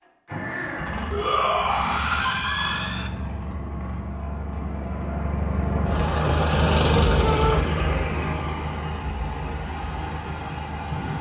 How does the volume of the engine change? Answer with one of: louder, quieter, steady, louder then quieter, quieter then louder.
louder then quieter.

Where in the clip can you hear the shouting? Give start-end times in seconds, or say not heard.
1.1-3.1, 7.2-7.7.